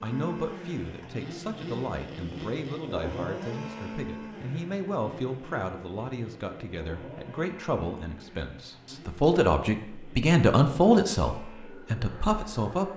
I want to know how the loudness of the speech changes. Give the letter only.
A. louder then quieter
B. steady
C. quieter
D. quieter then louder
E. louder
E.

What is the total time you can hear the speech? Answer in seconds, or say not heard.
13 s.